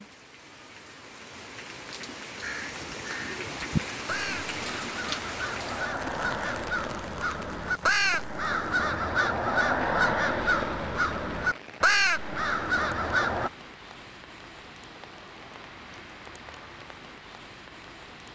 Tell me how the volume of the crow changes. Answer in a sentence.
The volume of the crow goes up.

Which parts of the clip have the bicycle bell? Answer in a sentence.
You can't hear the bicycle bell here.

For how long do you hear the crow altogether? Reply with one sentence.
You can hear the crow for 11 seconds altogether.